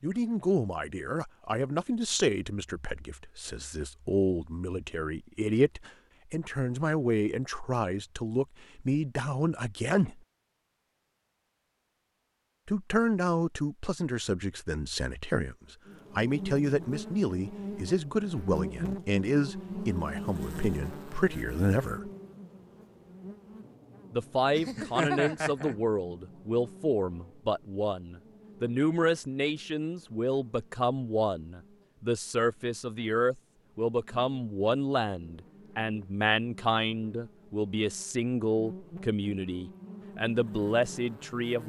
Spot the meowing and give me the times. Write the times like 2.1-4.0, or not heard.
24.6-25.8.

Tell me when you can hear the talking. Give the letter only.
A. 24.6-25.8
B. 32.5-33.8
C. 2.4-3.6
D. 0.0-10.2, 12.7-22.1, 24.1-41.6
D.